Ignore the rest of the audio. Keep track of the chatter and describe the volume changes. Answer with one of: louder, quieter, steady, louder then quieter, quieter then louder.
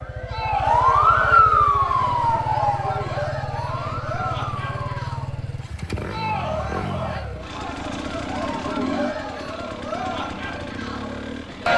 steady.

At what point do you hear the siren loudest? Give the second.
1 s.